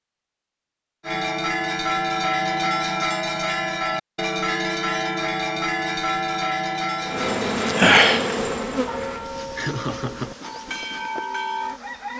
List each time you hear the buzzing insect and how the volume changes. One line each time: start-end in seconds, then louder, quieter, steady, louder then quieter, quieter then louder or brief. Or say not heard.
7.0-12.1 quieter.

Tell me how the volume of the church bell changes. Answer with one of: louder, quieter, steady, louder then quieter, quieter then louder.
quieter.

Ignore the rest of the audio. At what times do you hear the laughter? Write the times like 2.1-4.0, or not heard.
9.6-10.3.